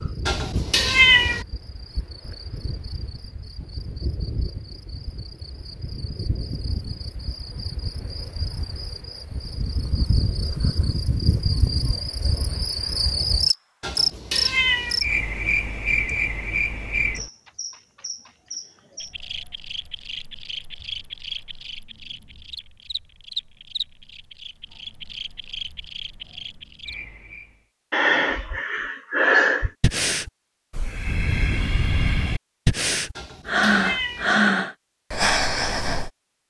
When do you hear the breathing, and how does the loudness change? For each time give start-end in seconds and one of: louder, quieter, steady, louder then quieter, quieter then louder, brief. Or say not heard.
27.9-36.1 quieter then louder.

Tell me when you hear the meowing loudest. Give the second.
1 s.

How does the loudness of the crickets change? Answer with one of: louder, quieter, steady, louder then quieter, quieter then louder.
louder then quieter.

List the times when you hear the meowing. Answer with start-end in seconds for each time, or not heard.
0.2-1.4, 13.8-15.0, 33.1-34.4.